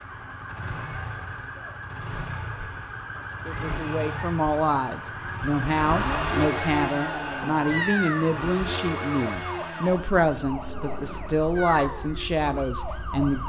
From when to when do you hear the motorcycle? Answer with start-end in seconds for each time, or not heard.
0.0-13.4.